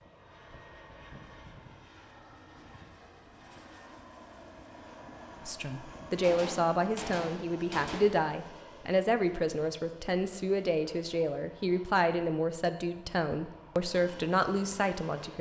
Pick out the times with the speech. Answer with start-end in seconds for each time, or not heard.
5.5-15.3.